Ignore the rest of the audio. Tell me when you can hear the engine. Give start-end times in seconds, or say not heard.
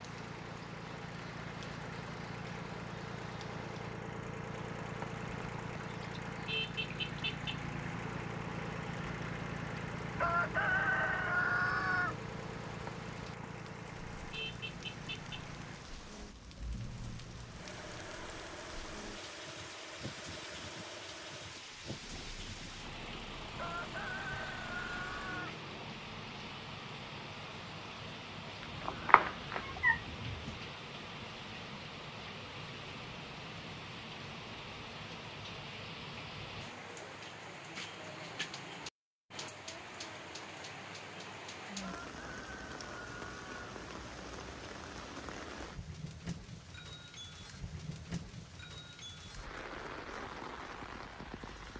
0.0-25.9.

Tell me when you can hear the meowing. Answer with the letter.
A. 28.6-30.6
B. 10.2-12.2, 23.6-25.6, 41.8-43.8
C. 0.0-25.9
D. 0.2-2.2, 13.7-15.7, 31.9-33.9
A.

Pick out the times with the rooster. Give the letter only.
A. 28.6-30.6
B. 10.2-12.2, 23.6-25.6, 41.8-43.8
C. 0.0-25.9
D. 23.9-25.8
B.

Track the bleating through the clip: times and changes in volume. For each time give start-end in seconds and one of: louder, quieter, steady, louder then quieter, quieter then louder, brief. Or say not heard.
not heard.